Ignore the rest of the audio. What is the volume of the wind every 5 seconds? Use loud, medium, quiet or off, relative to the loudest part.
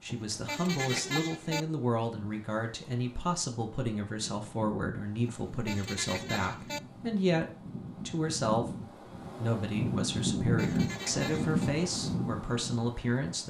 quiet, medium, loud.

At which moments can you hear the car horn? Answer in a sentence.
You can hear the car horn from 0.1 to 1.6 s, from 5.2 to 6.8 s and from 10.4 to 11.7 s.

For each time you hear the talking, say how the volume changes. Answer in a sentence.
You can hear the talking from 0.0 to 7.5 s, at a steady volume; and from 8.1 to 13.4 s, at a steady volume.